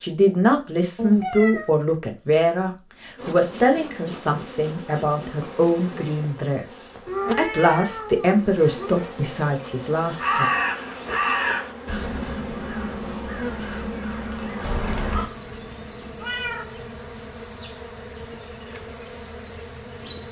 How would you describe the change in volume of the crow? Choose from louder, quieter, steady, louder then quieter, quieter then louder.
quieter.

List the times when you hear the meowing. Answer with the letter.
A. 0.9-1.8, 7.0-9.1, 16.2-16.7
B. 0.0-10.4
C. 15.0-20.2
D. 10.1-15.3
A.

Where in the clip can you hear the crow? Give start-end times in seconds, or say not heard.
10.1-15.3.